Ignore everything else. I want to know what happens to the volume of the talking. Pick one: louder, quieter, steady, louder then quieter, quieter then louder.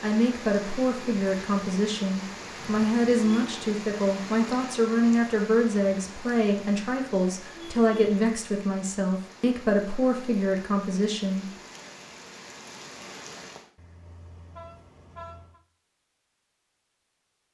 steady.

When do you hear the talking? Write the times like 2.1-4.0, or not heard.
0.0-11.4.